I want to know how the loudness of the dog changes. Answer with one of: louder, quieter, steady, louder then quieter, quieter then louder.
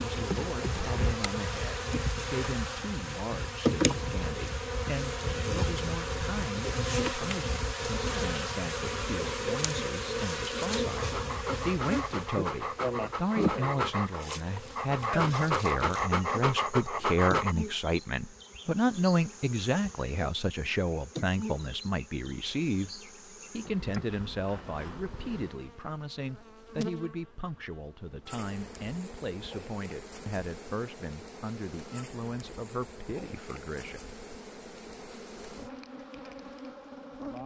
louder.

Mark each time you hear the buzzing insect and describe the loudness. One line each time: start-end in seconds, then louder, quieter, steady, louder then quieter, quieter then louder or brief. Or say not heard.
0.0-37.4 quieter.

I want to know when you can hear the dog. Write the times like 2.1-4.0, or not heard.
10.9-17.6.